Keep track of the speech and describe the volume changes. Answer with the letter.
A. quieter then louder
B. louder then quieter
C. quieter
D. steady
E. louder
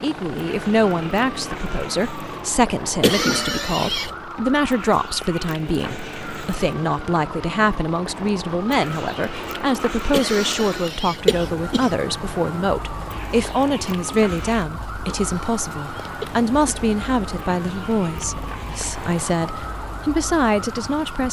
D.